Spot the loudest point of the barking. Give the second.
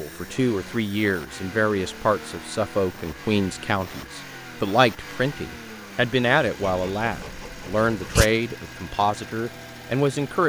8 s.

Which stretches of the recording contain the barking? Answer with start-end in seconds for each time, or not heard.
6.7-8.3.